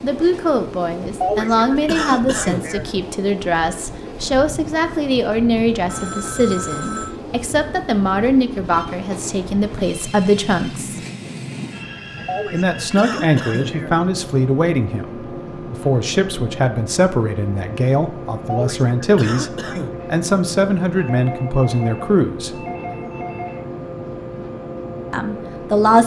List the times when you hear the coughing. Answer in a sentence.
The coughing can be heard from 1.2 to 2.9 s, from 12.2 to 13.9 s and from 18.4 to 19.9 s.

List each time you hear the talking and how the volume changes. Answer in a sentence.
You can hear the talking from 0.0 to 11.0 s, at a steady volume; from 12.5 to 22.6 s, at a steady volume; and briefly from 25.1 to 26.0 s.